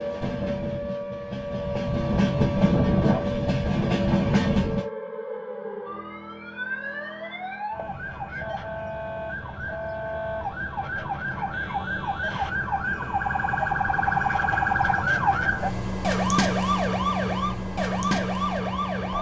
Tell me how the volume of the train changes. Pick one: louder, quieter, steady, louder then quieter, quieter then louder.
louder.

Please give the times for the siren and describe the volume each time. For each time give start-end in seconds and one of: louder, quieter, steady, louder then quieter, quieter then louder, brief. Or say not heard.
0.0-19.1 louder.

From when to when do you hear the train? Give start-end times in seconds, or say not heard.
0.0-4.8.